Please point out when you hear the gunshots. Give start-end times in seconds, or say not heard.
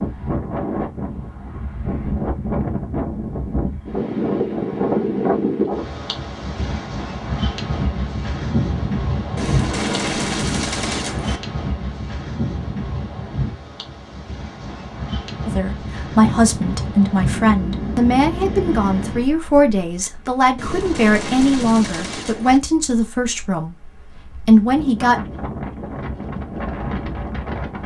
9.3-11.4, 20.6-22.6.